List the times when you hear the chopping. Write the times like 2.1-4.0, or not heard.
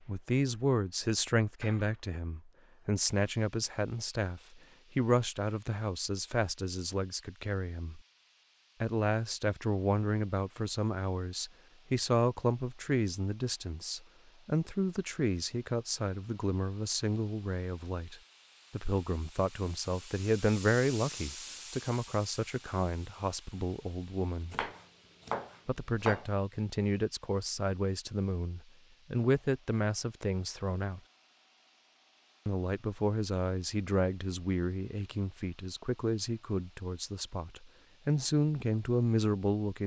24.5-26.3.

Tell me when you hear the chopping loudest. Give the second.
26 s.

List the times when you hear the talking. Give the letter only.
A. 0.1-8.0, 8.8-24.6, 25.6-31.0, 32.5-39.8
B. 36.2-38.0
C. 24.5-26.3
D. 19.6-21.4
A.